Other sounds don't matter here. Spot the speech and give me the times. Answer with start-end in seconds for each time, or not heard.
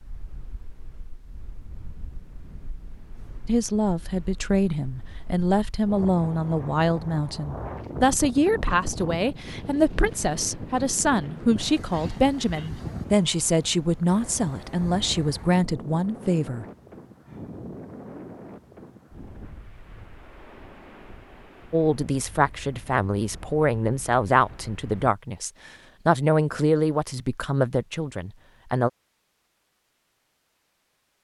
3.5-16.6, 21.7-28.9.